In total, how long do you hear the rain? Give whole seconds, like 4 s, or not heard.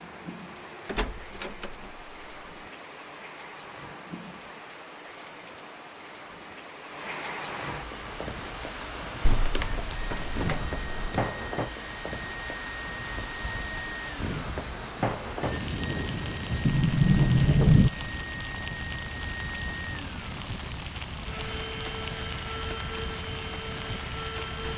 25 s.